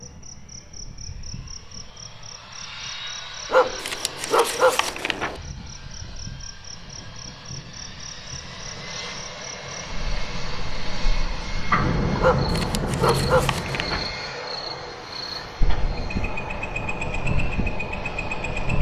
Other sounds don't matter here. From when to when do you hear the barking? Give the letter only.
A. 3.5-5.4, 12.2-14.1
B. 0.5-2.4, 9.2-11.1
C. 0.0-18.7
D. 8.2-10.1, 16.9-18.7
A.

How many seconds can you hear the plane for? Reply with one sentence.
You can hear the plane for 19 seconds altogether.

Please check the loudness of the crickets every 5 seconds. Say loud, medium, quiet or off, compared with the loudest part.
quiet, quiet, loud, loud.